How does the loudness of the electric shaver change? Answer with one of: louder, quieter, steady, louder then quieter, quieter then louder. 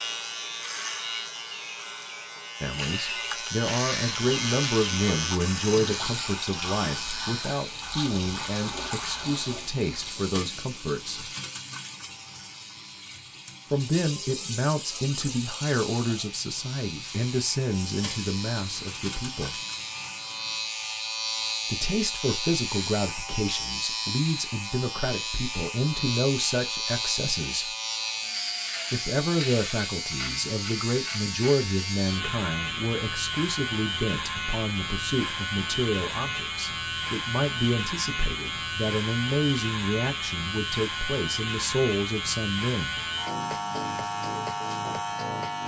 quieter then louder.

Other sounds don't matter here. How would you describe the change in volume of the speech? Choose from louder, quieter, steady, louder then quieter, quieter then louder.
steady.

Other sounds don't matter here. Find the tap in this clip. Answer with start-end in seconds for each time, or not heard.
4.2-20.8.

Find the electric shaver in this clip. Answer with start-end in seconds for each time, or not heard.
0.0-45.6.